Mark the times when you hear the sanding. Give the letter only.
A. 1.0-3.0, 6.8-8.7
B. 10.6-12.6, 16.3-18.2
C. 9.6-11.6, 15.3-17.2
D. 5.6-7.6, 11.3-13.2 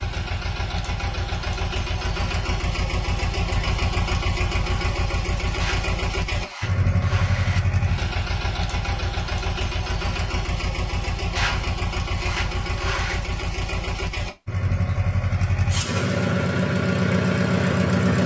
D.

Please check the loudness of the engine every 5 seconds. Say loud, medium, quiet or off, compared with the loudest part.
medium, medium, medium, loud.